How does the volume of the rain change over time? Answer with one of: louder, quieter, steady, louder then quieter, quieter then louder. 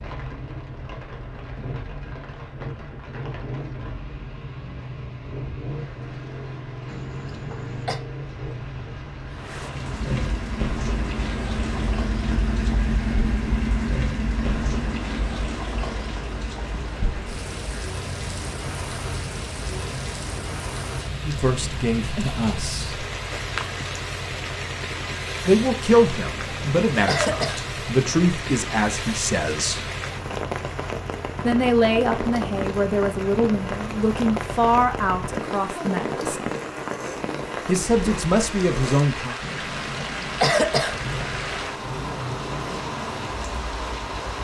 louder.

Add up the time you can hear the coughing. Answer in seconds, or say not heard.
4 s.